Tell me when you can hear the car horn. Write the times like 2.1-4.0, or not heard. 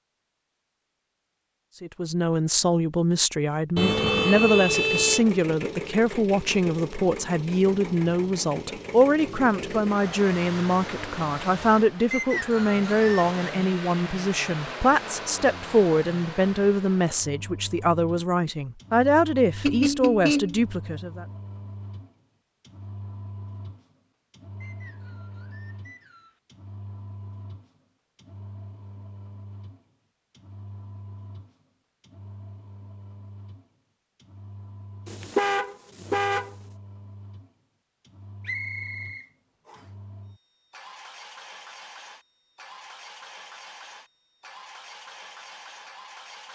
3.8-5.3, 19.6-20.6, 35.0-36.5.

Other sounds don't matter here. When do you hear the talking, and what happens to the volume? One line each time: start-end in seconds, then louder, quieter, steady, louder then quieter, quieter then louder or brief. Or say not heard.
1.8-21.2 steady.